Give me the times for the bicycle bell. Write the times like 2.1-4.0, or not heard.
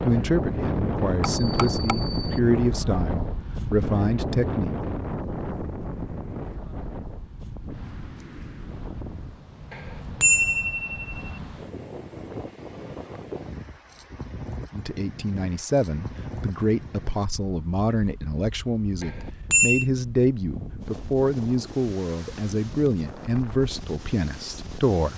1.2-2.4, 9.7-11.3, 19.0-19.9.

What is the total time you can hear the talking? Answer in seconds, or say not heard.
15 s.